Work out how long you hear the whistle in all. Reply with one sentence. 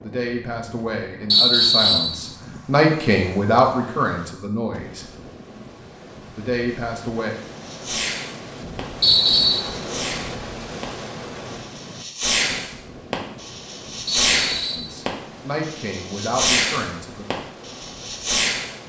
You can hear the whistle for 2 seconds altogether.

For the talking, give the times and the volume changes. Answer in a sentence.
You can hear the talking from 0.0 to 5.0 s, getting louder then quieter; briefly from 6.3 to 7.3 s; and briefly from 14.7 to 17.2 s.